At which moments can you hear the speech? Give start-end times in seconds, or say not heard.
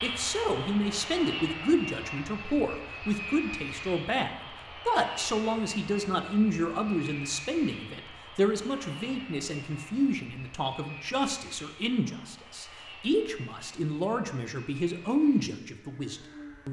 0.0-16.6.